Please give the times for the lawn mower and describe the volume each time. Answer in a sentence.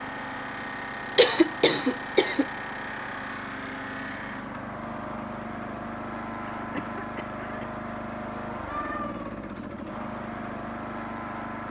You can hear the lawn mower from 0.0 to 11.6 s, at a steady volume.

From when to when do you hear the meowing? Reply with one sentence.
The meowing can be heard from 8.2 to 9.7 s.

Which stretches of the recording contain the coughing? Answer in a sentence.
You can hear the coughing from 1.1 to 2.5 s and from 6.4 to 7.7 s.